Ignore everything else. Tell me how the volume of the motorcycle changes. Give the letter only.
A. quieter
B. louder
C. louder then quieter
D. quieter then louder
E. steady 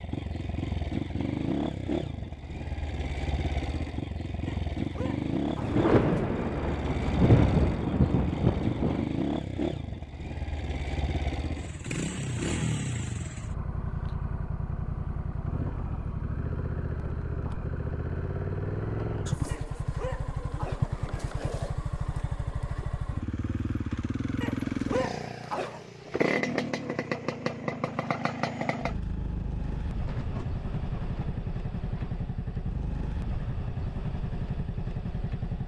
E.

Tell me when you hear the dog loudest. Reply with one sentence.
The volume of the dog peaks at 25 seconds.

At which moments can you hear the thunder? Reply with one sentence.
You can hear the thunder from 5.5 to 9.1 s and from 29.9 to 32.3 s.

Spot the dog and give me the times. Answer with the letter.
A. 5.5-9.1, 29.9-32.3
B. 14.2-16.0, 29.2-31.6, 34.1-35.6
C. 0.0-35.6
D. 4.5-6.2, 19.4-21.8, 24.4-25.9
D.